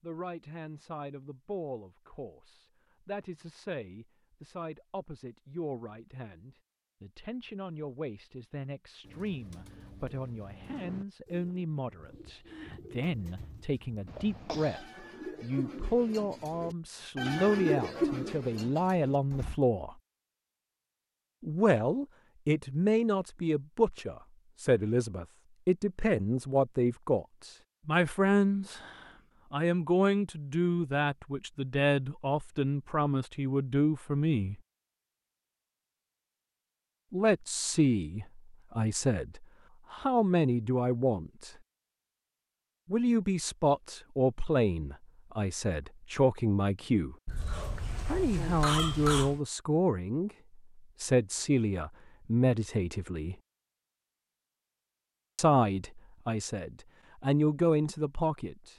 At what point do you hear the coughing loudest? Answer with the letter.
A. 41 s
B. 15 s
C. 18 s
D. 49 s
D.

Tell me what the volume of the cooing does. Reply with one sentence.
The loudness of the cooing goes up.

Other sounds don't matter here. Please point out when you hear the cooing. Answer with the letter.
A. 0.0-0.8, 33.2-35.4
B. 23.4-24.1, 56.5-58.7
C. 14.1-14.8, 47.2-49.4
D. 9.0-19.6
D.